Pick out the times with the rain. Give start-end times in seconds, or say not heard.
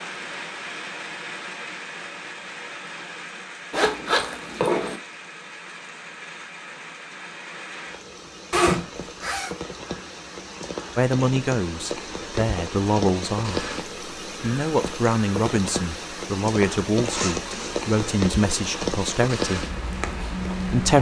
0.0-20.9.